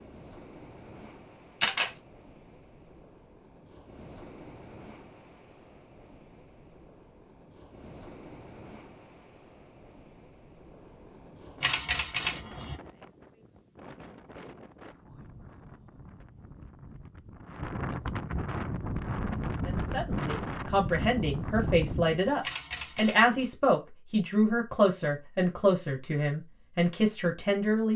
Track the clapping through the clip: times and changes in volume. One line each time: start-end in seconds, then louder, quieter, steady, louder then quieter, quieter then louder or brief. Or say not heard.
not heard.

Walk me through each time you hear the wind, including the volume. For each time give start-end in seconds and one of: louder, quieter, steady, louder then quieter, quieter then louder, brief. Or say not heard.
0.0-22.4 louder.